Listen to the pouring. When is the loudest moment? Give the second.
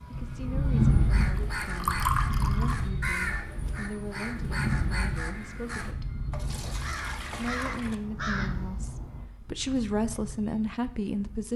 2 s.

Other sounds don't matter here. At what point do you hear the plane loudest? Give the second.
1 s.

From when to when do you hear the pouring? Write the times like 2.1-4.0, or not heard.
1.4-2.8, 6.3-8.0.